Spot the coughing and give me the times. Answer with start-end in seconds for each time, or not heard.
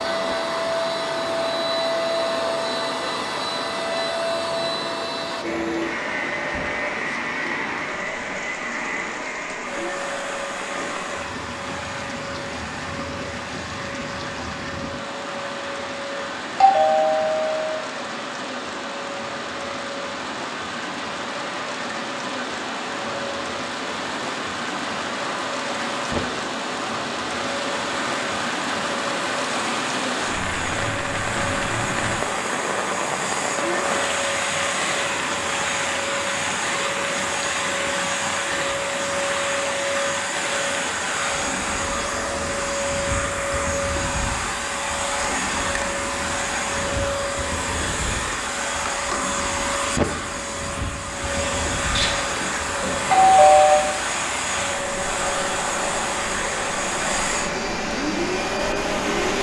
not heard.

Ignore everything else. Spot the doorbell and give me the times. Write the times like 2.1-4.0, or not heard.
16.6-17.8, 52.0-53.8.